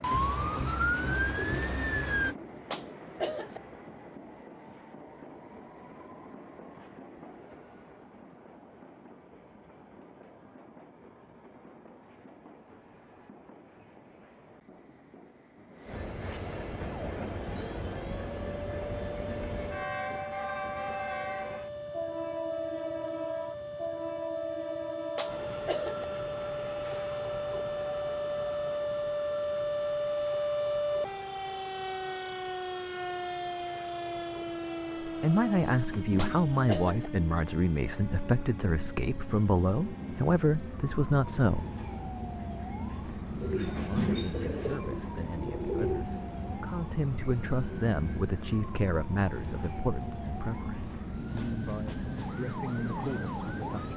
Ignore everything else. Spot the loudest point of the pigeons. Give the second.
46 s.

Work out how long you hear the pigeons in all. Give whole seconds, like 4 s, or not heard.
5 s.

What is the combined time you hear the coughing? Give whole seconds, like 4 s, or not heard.
3 s.